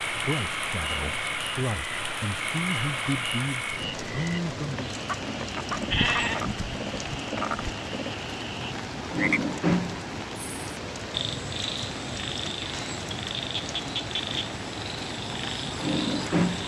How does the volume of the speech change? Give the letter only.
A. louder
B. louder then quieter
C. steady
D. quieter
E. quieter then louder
A.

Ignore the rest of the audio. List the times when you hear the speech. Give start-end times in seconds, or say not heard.
0.1-5.0.